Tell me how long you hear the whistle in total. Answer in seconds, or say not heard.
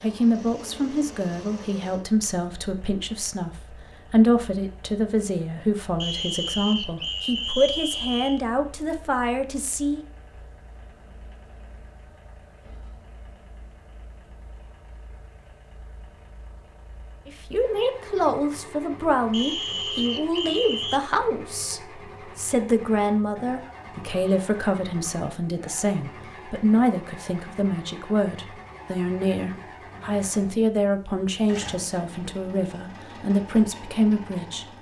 4 s.